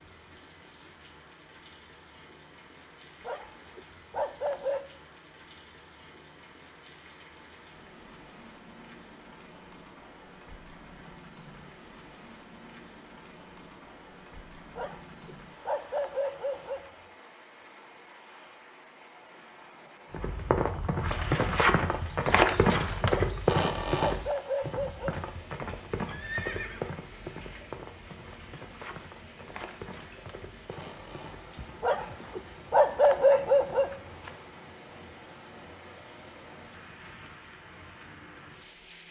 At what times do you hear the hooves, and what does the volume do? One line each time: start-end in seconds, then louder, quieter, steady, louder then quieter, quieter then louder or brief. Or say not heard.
20.1-32.2 quieter.